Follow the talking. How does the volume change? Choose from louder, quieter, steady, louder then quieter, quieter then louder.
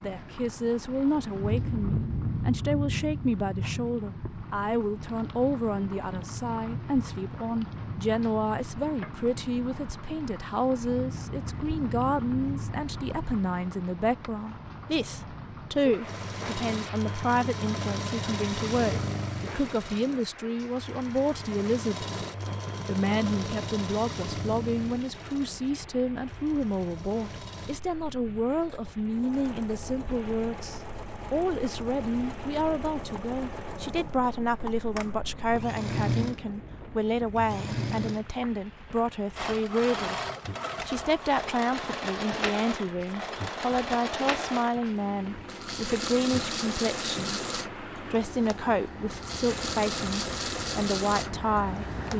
steady.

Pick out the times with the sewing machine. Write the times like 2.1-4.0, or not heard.
16.0-52.1.